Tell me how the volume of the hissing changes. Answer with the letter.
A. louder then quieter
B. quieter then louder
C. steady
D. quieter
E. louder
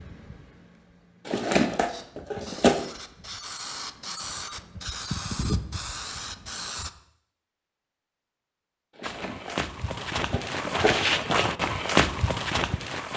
E.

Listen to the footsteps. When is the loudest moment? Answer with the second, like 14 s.
12 s.